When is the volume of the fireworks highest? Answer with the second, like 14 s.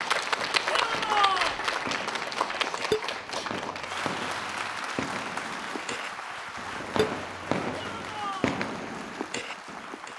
8 s.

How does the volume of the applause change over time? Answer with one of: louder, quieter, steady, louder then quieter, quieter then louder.
quieter.